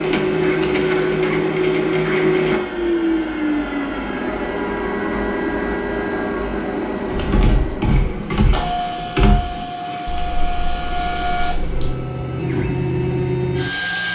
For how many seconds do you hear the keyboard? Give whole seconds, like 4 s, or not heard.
5 s.